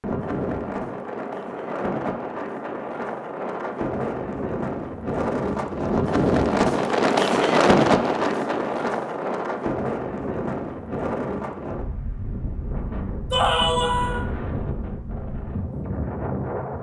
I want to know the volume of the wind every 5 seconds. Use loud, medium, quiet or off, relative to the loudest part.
medium, loud, medium, medium.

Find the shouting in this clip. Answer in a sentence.
The shouting can be heard from 13.3 to 14.2 s.